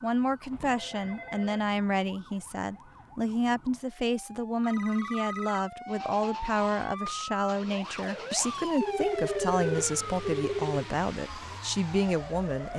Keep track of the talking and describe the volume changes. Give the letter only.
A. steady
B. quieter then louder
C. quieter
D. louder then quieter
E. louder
A.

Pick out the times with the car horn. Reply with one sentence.
The car horn can't be heard in this clip.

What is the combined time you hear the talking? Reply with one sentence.
You can hear the talking for 13 seconds altogether.